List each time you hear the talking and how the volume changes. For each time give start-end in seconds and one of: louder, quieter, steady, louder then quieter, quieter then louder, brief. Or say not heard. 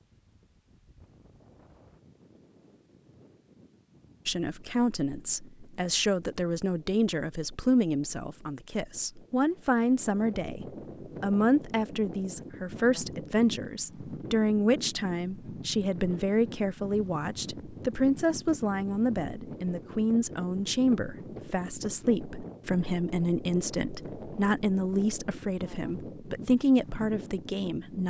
4.2-28.0 steady.